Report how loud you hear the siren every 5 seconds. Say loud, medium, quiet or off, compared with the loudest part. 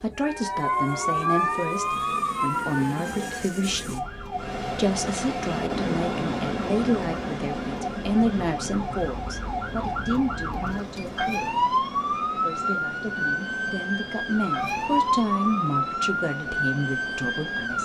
loud, medium, loud, loud.